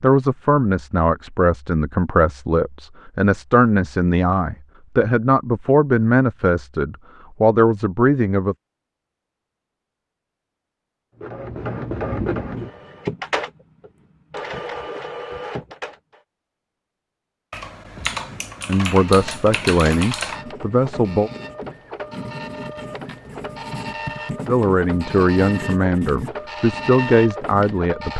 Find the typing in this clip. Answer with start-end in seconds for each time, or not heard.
17.5-20.4.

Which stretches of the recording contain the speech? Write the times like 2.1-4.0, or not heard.
0.0-8.6, 18.6-21.3, 24.4-28.1.